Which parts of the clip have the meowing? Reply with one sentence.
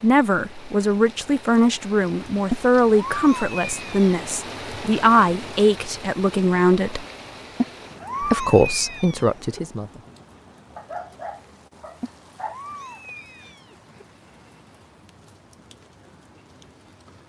The meowing can be heard from 2.5 to 4.1 s, from 7.5 to 9.6 s and from 12.0 to 14.1 s.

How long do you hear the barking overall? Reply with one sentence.
The barking can be heard for 2 seconds in total.